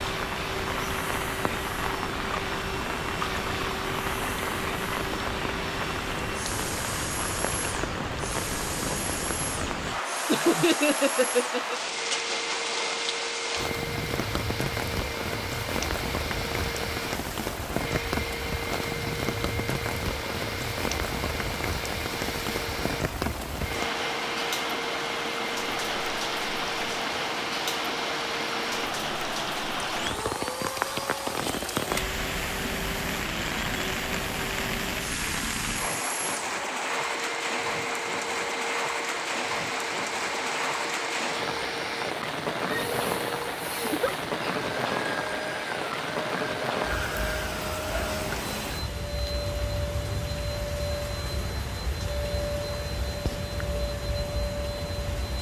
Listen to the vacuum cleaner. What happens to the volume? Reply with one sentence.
The volume of the vacuum cleaner stays about the same.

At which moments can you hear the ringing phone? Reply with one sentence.
The ringing phone can't be heard in this clip.